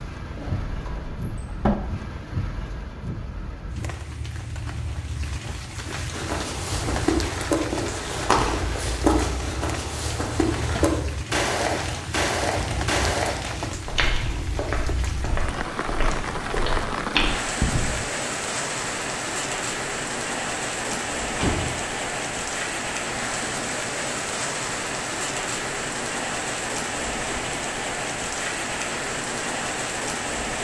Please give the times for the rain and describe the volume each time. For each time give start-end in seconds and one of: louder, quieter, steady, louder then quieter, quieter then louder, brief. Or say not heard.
0.0-30.5 louder.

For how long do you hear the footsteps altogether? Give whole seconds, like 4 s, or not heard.
12 s.